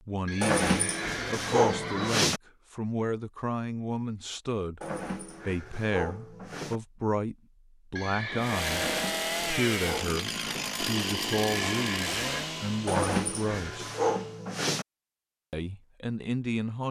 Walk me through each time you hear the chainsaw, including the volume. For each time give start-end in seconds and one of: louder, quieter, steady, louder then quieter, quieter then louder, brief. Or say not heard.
8.3-14.4 quieter.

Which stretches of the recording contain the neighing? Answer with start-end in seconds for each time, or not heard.
0.2-2.3, 8.0-8.9, 11.3-12.6.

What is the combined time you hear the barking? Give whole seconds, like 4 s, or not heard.
8 s.